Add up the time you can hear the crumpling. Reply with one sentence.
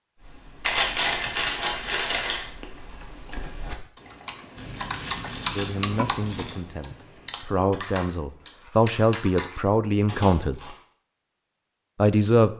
The crumpling can be heard for 5 seconds in total.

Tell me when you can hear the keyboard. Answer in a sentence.
The keyboard can be heard from 0.1 to 9.6 s.